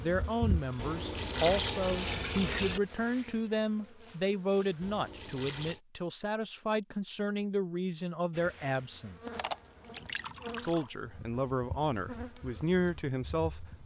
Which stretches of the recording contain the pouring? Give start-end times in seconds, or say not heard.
0.8-2.8, 4.8-5.8, 9.3-10.9.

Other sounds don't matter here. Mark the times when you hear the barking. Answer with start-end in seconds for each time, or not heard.
not heard.